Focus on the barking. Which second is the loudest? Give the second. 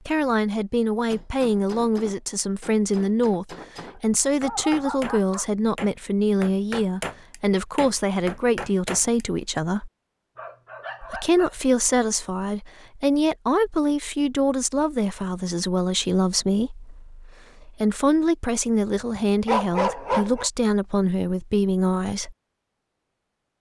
20 s.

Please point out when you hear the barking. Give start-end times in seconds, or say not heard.
4.4-5.5, 10.3-11.6, 19.1-20.5.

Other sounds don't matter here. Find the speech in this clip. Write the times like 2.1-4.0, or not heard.
0.1-9.9, 11.0-22.4.